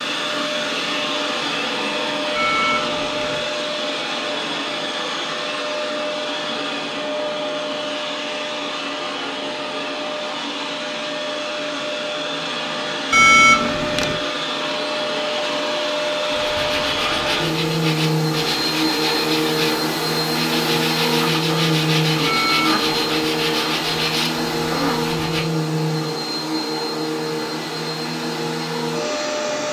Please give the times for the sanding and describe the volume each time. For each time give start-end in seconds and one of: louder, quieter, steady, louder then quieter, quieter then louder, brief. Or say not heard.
16.3-25.4 steady.